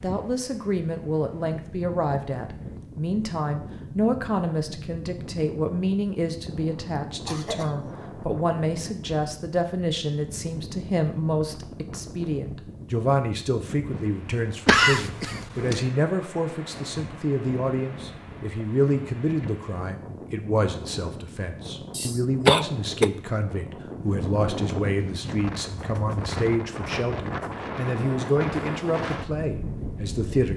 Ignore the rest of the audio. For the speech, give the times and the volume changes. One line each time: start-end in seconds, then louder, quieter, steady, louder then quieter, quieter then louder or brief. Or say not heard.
0.0-30.5 steady.